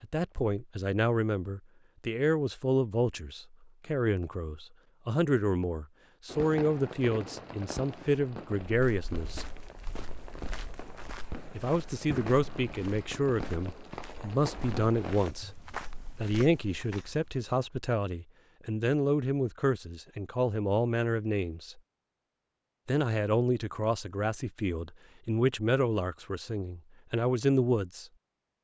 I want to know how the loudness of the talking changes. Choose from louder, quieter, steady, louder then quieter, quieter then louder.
steady.